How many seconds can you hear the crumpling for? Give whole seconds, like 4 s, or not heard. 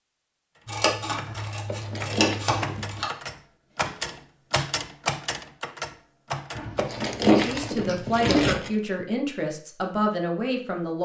3 s.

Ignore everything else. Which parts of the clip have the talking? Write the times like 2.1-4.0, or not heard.
7.3-11.0.